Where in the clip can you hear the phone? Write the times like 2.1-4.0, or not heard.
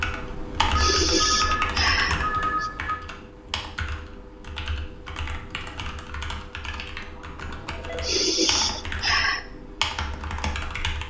0.8-3.0, 7.3-8.2.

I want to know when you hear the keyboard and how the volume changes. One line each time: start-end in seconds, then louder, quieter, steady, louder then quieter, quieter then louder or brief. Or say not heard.
0.0-11.0 quieter then louder.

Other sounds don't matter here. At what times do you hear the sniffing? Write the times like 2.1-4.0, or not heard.
0.8-2.7, 8.0-9.4.